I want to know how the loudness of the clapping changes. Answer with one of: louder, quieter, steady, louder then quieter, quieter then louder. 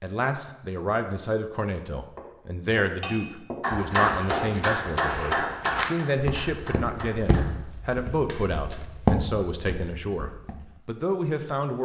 quieter.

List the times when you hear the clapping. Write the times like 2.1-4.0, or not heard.
3.0-8.8.